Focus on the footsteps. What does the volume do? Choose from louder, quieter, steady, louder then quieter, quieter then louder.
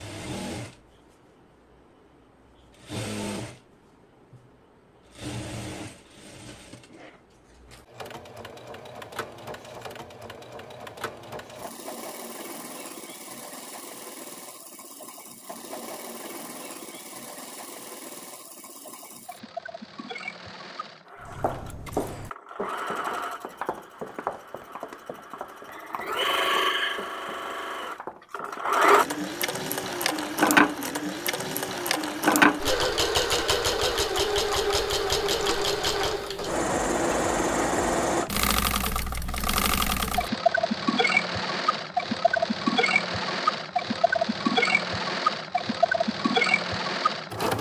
quieter.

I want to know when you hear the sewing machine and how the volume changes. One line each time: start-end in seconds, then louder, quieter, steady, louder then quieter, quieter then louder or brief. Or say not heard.
0.0-47.5 louder.